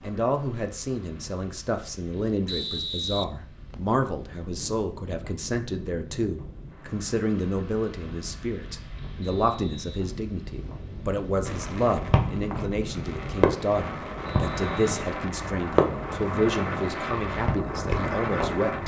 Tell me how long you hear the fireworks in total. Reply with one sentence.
The fireworks can be heard for 7 seconds in total.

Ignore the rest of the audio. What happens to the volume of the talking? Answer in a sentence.
The loudness of the talking stays about the same.